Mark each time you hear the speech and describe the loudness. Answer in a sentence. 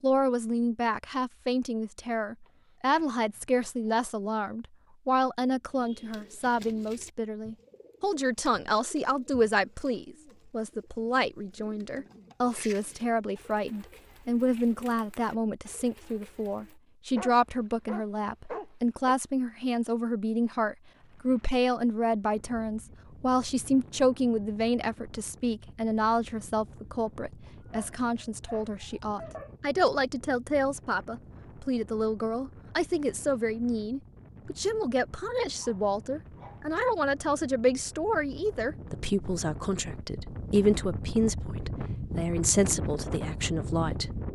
You can hear the speech from 0.0 to 44.2 s, at a steady volume.